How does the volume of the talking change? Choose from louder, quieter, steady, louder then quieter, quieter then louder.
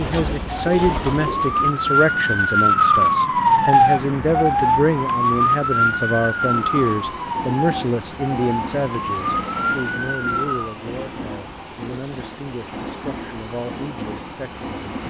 quieter.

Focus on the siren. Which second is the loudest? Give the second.
3 s.